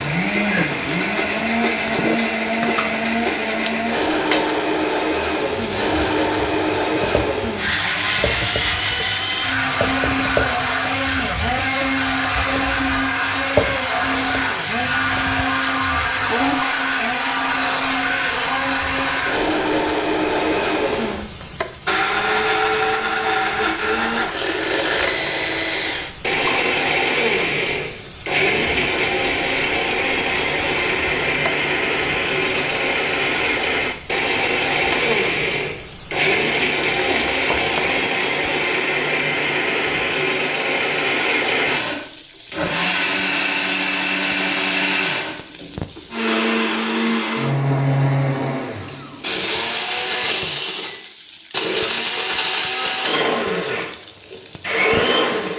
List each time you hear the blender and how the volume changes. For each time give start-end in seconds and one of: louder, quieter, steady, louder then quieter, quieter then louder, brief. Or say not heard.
0.0-55.5 steady.